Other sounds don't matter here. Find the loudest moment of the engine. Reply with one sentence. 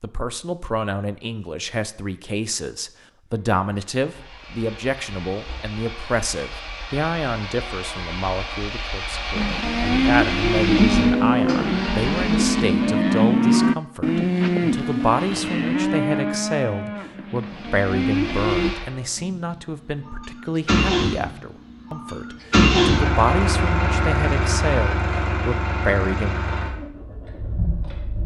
The loudest moment of the engine is at 23 seconds.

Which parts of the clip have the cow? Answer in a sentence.
The cow can be heard from 9.3 to 18.8 s.